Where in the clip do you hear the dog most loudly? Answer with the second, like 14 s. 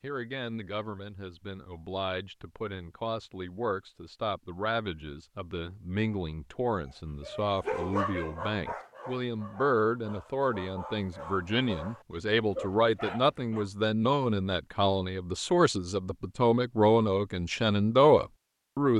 8 s.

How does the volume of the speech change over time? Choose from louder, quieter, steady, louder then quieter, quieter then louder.
louder.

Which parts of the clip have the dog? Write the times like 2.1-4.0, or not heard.
7.2-13.7.